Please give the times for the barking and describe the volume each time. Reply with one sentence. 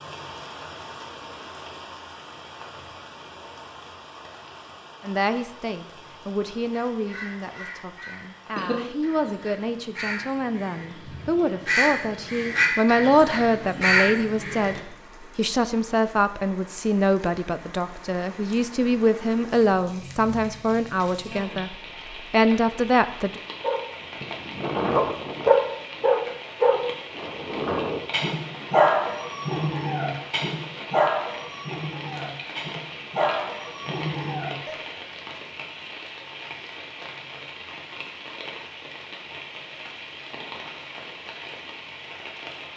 You can hear the barking from 23.6 to 34.8 s, getting quieter.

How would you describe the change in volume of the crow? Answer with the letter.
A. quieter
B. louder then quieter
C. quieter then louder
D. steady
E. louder
C.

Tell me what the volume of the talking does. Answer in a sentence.
The loudness of the talking goes up.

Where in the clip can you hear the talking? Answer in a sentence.
You can hear the talking from 5.0 to 23.4 s.